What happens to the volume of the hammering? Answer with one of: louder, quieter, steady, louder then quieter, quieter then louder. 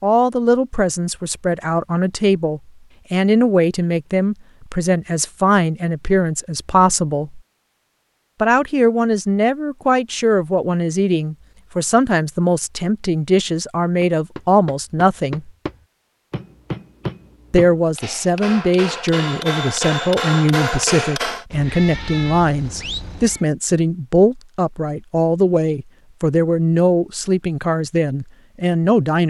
louder.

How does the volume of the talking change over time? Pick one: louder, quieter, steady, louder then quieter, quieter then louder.
steady.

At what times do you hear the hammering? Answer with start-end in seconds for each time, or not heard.
14.0-21.4.